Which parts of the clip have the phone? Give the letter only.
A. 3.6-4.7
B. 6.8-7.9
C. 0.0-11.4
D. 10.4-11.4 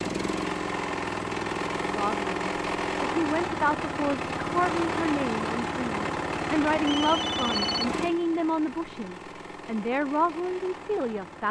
B.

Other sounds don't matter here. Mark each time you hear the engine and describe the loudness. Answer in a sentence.
The engine can be heard from 0.0 to 11.4 s, getting quieter.